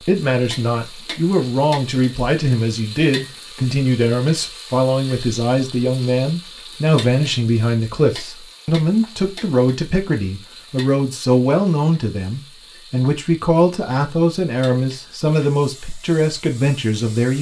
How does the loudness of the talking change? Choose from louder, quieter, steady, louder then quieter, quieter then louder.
steady.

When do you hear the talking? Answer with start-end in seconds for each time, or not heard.
0.0-17.3.